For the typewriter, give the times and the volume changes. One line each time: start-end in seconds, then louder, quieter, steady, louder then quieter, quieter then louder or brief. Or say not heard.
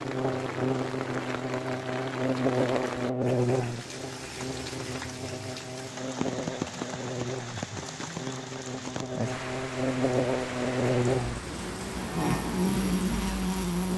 not heard.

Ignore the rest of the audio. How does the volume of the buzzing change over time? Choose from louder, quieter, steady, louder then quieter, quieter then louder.
quieter then louder.